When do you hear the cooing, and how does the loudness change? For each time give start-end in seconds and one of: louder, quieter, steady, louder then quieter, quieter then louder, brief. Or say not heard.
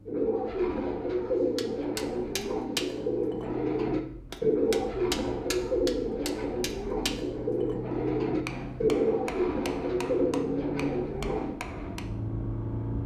0.1-11.6 steady.